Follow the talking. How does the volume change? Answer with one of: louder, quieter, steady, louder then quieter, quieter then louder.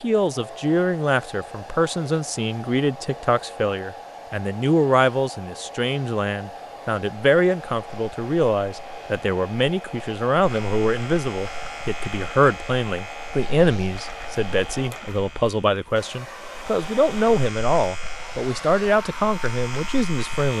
steady.